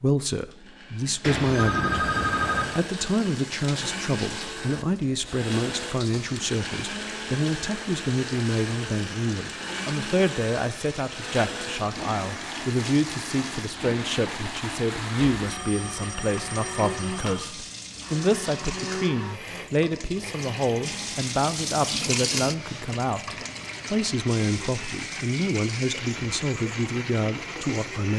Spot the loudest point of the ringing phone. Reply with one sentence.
The volume of the ringing phone peaks at 2 seconds.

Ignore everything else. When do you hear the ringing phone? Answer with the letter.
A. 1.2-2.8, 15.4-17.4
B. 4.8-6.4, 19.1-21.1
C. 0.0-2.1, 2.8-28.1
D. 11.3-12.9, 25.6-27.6
A.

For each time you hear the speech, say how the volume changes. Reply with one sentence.
You can hear the speech briefly from 0.0 to 2.1 s; and from 2.8 to 28.1 s, at a steady volume.